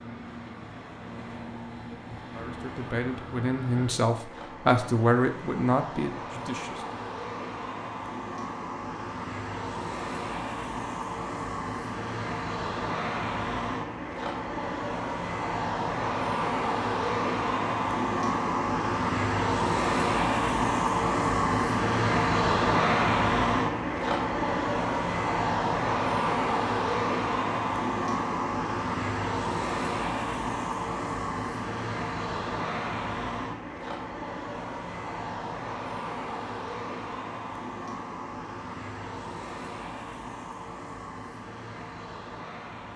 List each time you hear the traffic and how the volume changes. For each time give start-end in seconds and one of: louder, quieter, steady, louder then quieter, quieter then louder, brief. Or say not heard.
0.0-42.9 louder then quieter.